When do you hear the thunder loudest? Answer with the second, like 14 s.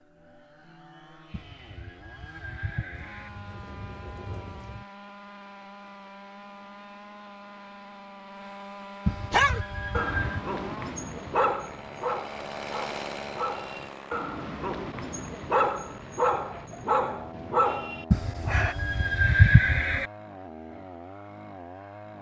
4 s.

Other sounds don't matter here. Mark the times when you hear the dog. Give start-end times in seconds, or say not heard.
9.3-18.8.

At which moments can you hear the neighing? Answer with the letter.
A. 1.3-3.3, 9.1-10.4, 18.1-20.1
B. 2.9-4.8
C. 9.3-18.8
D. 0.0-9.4
A.